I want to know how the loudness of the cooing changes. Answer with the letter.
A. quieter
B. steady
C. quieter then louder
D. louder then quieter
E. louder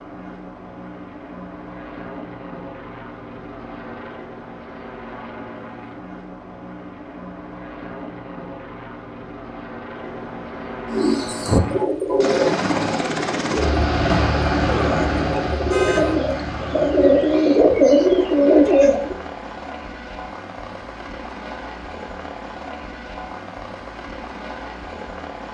C.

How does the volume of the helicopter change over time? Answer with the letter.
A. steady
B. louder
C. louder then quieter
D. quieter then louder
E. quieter
C.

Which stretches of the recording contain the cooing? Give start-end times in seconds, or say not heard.
10.9-19.1.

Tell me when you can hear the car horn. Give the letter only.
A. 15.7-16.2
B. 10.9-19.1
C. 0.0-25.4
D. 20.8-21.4
A.